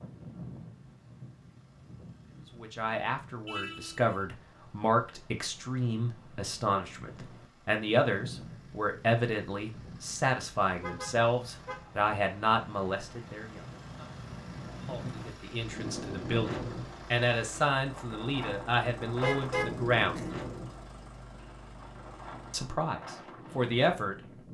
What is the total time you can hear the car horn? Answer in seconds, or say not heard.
3 s.